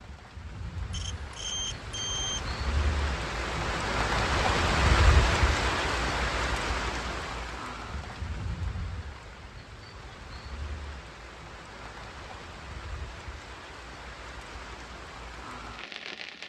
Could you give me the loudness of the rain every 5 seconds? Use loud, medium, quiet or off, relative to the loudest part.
loud, loud, quiet, medium.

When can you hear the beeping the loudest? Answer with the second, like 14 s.
2 s.